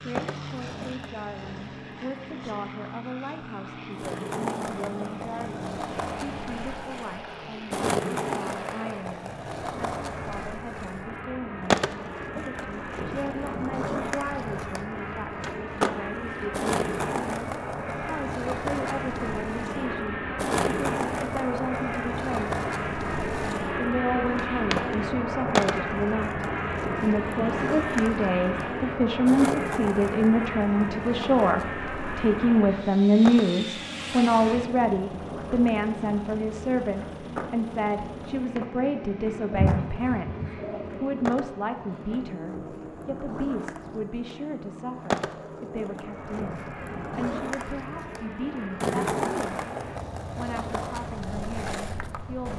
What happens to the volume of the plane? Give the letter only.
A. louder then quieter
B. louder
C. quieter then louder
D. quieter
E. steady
A.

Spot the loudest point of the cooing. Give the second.
40 s.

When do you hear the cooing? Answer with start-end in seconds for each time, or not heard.
39.5-41.1.